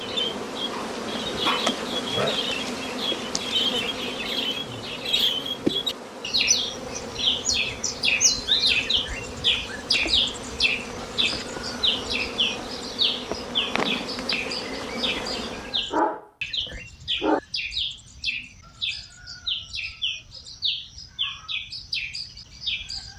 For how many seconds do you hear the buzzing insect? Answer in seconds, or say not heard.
16 s.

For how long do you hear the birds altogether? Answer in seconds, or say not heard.
23 s.